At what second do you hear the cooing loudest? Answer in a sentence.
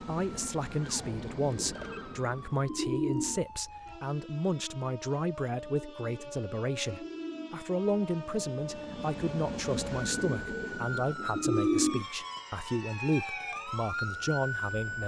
The loudest moment of the cooing is at 12 seconds.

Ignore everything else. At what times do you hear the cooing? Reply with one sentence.
You can hear the cooing from 1.4 to 3.4 s, from 5.7 to 7.6 s and from 10.1 to 12.1 s.